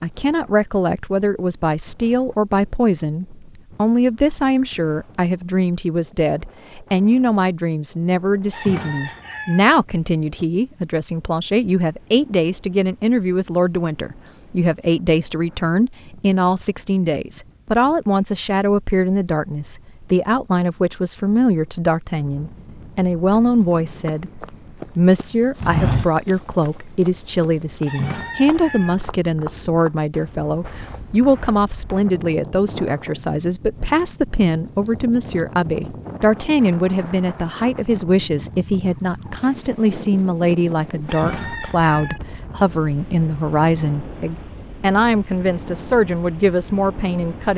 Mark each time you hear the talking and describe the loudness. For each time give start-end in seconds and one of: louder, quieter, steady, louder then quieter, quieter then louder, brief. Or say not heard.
0.0-24.3 steady
24.9-47.5 steady.